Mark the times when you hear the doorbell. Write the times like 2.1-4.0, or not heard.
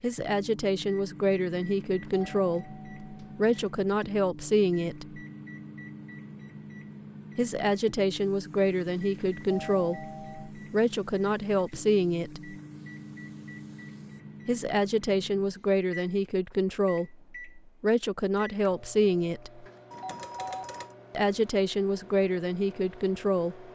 2.0-3.5, 9.5-10.5, 19.9-20.9.